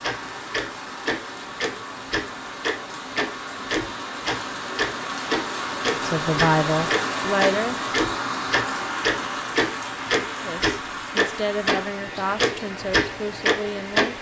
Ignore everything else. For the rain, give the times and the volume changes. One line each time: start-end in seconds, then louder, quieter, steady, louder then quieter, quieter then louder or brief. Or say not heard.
0.0-14.1 louder then quieter.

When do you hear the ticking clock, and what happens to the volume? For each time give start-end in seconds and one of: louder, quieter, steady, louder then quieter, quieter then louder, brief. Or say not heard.
0.0-14.1 louder.